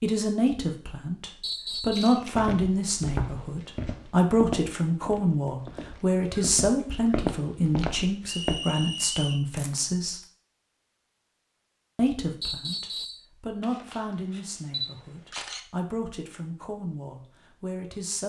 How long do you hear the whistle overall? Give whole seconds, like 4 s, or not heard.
3 s.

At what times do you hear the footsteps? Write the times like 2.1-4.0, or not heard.
2.1-8.6.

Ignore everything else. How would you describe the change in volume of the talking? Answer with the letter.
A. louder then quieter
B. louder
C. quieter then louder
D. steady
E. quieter
E.